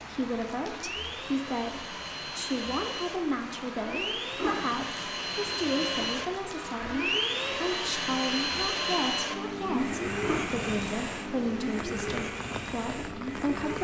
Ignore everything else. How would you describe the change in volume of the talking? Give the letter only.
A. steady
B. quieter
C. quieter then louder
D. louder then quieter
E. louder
A.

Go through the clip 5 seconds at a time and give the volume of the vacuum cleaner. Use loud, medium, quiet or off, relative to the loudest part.
medium, loud, loud.